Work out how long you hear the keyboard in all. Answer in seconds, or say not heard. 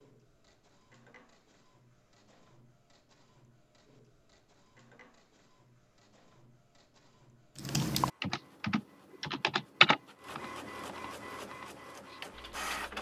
5 s.